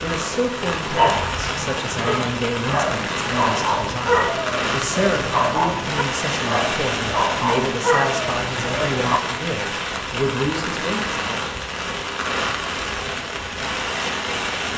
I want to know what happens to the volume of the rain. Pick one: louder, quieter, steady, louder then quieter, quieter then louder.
steady.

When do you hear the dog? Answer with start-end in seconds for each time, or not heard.
0.9-9.2.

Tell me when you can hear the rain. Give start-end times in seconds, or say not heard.
0.0-14.7.